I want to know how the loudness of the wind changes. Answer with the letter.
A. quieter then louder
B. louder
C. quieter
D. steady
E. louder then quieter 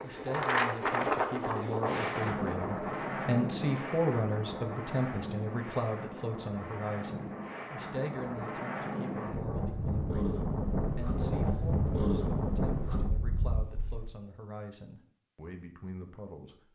A.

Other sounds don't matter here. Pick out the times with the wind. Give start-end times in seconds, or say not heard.
0.0-14.1.